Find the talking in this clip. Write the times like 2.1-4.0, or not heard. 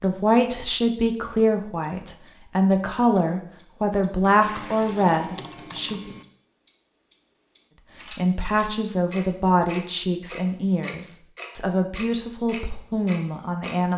0.0-6.1, 8.1-13.9.